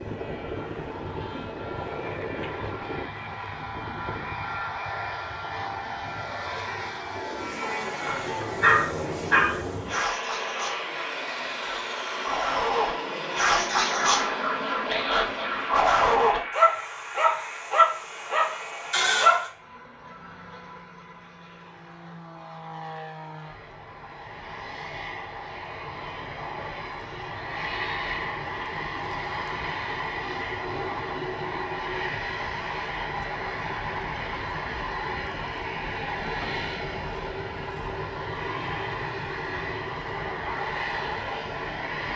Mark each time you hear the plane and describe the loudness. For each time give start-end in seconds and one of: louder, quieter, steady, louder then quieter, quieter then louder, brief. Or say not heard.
0.0-42.1 quieter then louder.